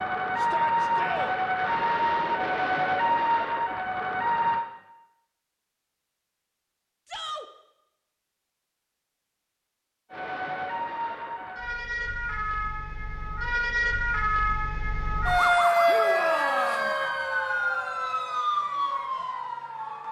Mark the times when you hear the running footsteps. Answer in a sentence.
The running footsteps can't be heard in this clip.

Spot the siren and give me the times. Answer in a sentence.
The siren can be heard from 0.0 to 4.7 s and from 10.1 to 20.0 s.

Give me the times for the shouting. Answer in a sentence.
You can hear the shouting from 0.3 to 1.4 s, from 7.0 to 7.5 s and from 15.8 to 16.9 s.